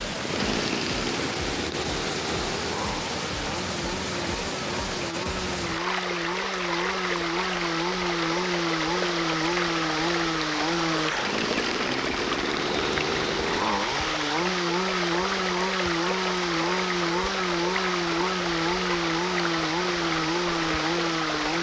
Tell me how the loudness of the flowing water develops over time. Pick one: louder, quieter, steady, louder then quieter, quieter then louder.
steady.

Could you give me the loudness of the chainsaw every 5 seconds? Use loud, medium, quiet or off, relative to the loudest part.
medium, loud, loud, loud, loud.